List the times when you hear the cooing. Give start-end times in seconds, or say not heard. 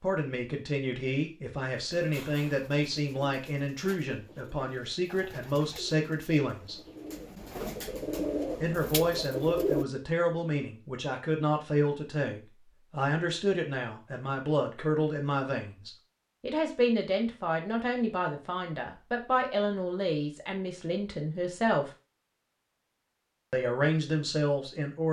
1.9-9.8.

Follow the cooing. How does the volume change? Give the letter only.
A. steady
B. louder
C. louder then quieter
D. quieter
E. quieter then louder
B.